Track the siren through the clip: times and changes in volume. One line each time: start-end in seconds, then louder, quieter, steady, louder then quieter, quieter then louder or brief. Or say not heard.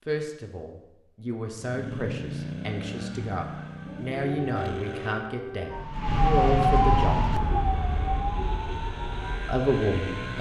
3.0-10.3 louder then quieter.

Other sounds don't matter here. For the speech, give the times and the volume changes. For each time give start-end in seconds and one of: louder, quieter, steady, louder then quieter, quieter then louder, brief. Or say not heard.
0.1-7.2 louder
9.4-10.3 brief.